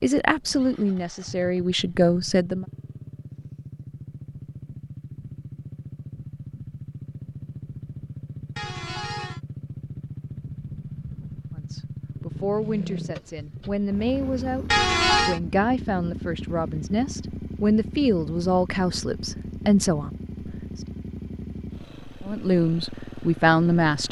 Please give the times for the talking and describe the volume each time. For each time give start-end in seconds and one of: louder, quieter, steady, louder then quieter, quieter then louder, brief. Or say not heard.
0.0-2.6 brief
11.6-20.6 louder
22.2-24.0 brief.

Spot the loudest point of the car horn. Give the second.
15 s.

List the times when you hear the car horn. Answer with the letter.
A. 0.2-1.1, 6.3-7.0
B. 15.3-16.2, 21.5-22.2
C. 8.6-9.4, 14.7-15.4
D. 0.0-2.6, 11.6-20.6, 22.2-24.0
C.